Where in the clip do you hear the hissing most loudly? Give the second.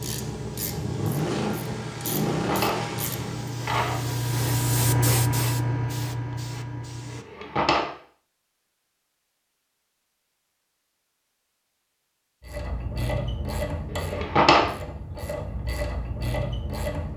5 s.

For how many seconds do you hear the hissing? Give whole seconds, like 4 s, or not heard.
7 s.